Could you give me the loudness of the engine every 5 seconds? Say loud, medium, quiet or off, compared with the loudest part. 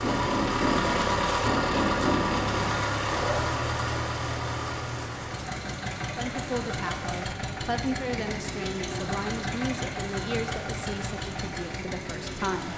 loud, medium, medium.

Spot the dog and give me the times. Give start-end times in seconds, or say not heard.
0.0-3.5.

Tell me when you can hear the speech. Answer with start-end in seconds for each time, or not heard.
6.2-12.7.